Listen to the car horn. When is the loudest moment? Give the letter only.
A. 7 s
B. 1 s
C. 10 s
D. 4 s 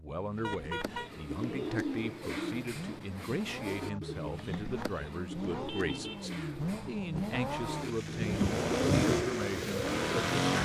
B.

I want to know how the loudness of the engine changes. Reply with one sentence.
The loudness of the engine goes up.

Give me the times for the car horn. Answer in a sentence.
You can hear the car horn from 0.4 to 1.1 s and from 5.7 to 6.3 s.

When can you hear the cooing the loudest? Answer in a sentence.
The volume of the cooing peaks at 9 seconds.